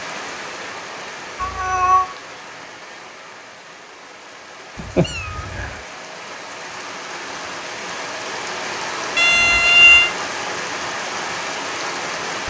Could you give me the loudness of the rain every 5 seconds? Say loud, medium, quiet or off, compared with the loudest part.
medium, loud, loud.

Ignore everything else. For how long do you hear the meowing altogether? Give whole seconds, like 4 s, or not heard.
3 s.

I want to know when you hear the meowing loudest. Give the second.
10 s.